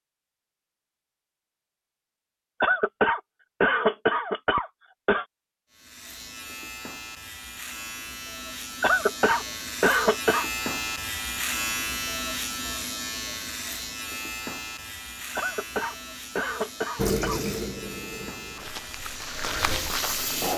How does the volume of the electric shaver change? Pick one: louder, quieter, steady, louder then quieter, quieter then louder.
louder then quieter.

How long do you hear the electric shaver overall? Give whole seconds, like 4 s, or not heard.
15 s.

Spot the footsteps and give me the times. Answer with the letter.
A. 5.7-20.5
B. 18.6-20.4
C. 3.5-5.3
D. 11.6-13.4
B.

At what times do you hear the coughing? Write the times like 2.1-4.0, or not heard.
2.6-5.2, 8.8-10.5, 15.3-17.4.